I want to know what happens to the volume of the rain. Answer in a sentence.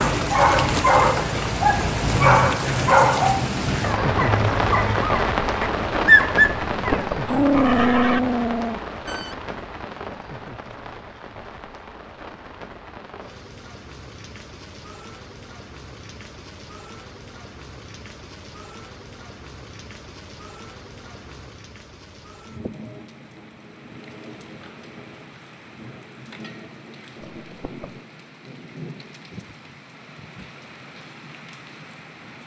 The volume of the rain goes down.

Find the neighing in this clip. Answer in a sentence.
You can hear the neighing from 6.7 to 8.2 s and from 27.3 to 28.0 s.